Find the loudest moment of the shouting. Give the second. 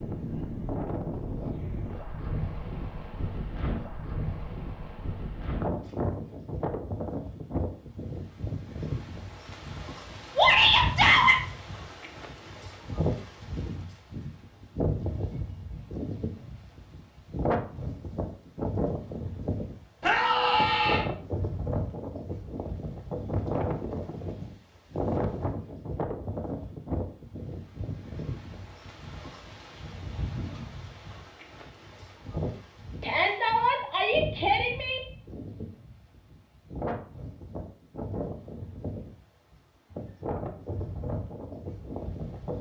11 s.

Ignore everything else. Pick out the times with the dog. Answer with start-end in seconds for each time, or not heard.
not heard.